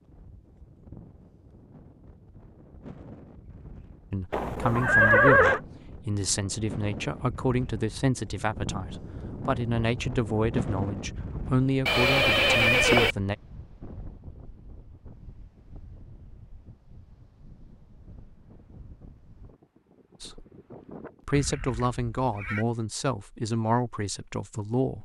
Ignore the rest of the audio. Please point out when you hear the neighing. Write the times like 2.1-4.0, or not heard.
4.3-5.6, 11.8-13.2, 21.3-22.6.